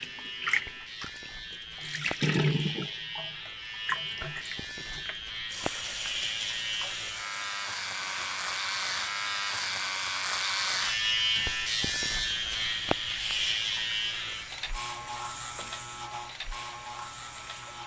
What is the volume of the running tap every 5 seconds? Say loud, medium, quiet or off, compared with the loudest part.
loud, medium, quiet, quiet.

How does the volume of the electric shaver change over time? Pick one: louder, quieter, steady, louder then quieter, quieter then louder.
louder then quieter.